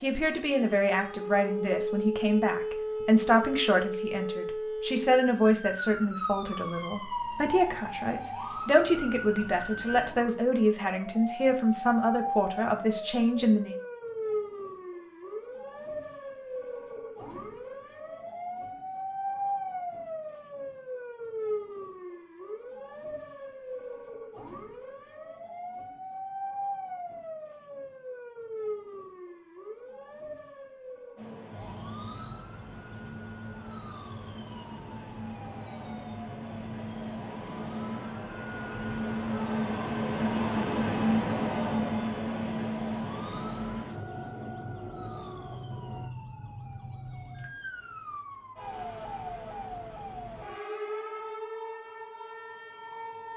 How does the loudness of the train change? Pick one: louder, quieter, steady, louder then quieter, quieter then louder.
louder then quieter.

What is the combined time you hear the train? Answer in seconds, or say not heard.
15 s.